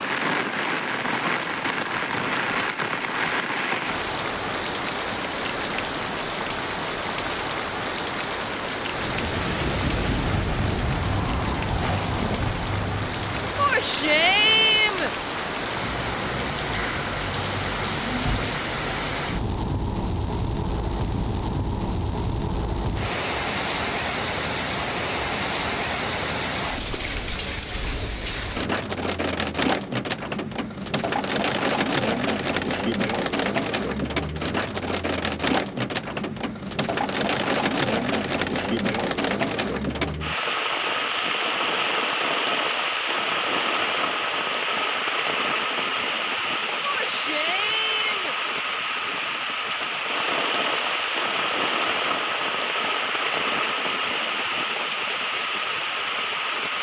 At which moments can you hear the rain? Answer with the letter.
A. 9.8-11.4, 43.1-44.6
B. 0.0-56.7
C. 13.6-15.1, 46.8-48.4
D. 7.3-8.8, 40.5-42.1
B.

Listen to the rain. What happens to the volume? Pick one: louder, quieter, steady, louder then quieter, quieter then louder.
steady.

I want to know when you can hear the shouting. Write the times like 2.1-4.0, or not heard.
13.6-15.1, 46.8-48.4.